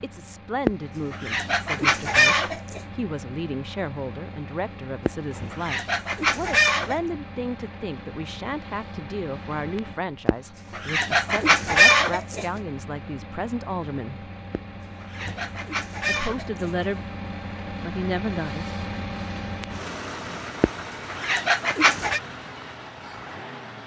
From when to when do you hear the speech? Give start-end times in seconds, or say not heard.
0.0-14.3, 16.1-17.0, 17.8-18.8.